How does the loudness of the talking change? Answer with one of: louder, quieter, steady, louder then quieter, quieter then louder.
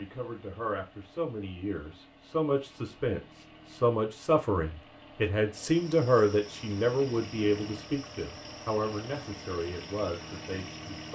louder then quieter.